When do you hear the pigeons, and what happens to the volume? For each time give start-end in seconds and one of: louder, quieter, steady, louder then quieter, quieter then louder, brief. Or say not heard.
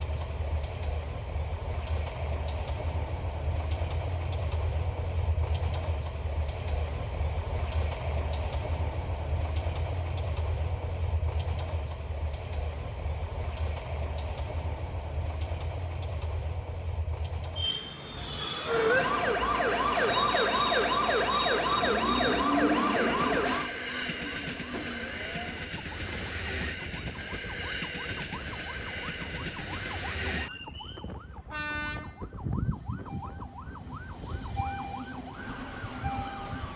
not heard.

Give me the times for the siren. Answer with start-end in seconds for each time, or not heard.
18.6-36.7.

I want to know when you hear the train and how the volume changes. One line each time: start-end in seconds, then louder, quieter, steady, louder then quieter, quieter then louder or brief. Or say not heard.
0.0-36.7 steady.